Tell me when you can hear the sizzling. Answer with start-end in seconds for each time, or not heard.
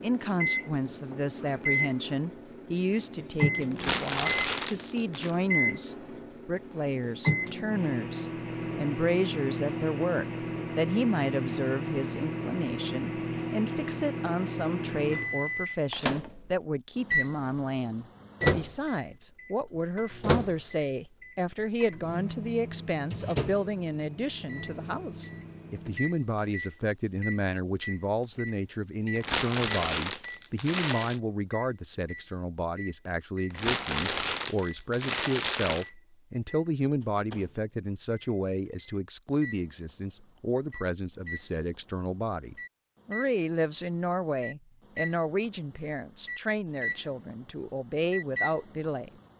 not heard.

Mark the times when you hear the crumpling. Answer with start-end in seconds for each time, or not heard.
3.7-5.3, 29.1-31.2, 33.5-35.9.